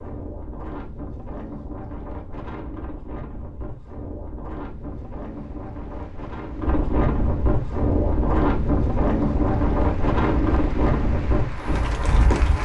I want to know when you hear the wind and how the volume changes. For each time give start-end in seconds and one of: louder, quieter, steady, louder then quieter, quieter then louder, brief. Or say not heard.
0.0-12.6 louder.